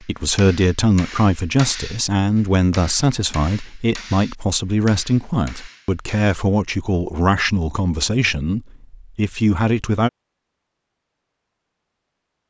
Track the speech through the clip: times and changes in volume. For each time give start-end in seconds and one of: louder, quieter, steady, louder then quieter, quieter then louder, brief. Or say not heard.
0.1-10.1 steady.